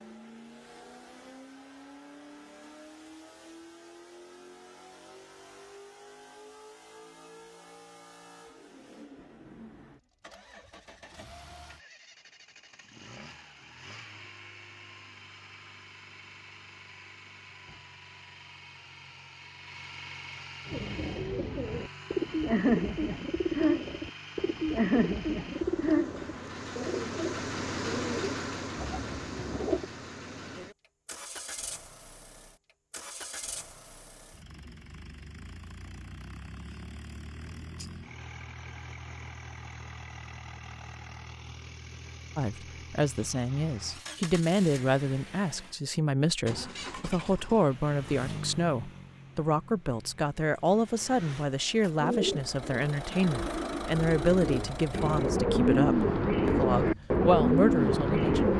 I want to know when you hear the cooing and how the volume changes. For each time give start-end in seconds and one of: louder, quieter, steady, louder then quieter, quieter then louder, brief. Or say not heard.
20.6-29.9 quieter
52.0-58.5 louder.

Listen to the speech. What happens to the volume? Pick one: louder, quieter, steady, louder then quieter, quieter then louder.
steady.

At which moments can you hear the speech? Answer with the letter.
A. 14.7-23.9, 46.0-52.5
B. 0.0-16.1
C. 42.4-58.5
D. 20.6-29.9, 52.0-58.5
C.